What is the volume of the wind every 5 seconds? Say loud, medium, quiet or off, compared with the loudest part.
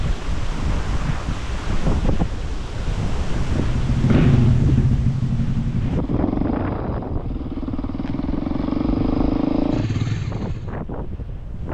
loud, loud, medium.